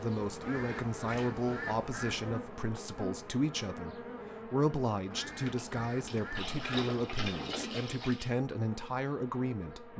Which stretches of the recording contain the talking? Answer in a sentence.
The talking can be heard from 0.0 to 9.9 s.